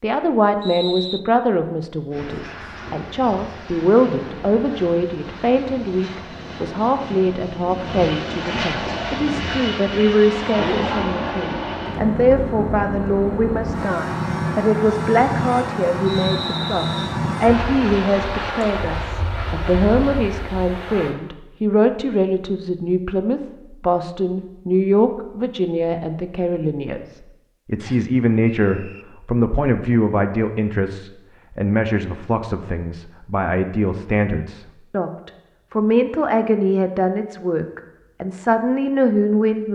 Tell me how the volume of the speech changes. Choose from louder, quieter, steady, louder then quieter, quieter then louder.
steady.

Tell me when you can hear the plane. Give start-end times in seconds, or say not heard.
2.1-21.1.